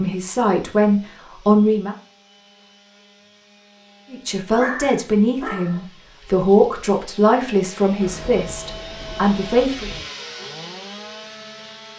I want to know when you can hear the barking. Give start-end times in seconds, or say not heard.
4.5-6.5.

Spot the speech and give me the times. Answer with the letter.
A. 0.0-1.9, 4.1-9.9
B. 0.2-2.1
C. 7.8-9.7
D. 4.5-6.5
A.